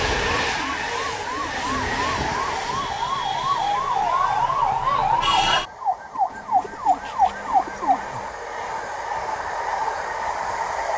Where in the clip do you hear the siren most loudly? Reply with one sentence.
The loudest moment of the siren is at 5 seconds.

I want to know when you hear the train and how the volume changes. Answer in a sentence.
The train can be heard from 0.0 to 10.9 s, getting quieter then louder.